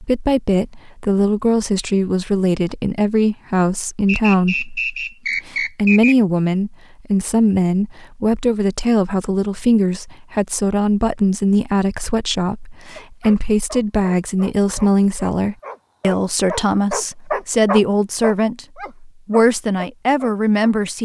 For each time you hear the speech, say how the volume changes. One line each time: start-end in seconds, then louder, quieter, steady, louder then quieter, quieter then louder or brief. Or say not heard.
0.0-21.0 steady.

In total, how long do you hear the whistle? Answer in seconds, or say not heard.
2 s.